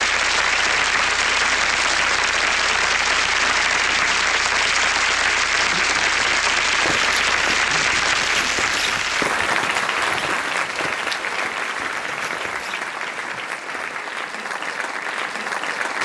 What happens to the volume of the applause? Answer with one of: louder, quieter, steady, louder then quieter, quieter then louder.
quieter.